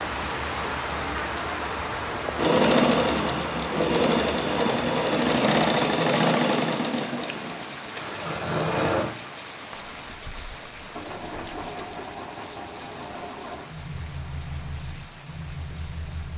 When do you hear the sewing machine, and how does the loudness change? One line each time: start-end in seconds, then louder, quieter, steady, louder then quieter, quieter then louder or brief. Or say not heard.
2.4-16.3 quieter.